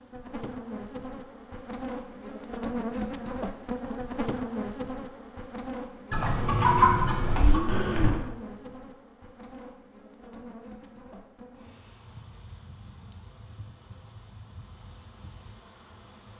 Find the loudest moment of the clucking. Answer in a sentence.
The volume of the clucking peaks at 7 seconds.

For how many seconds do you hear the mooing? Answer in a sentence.
The mooing can be heard for 2 seconds in total.